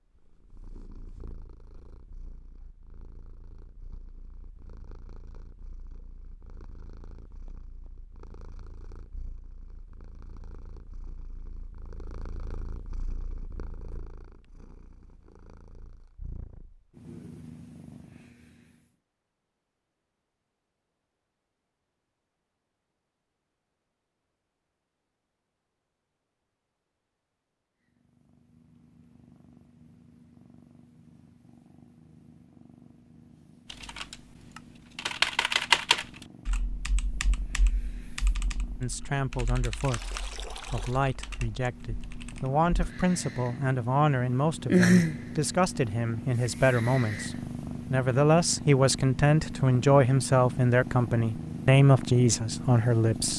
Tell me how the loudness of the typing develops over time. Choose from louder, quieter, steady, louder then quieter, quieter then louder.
quieter.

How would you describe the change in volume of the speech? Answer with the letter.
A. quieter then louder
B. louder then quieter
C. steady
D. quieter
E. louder
E.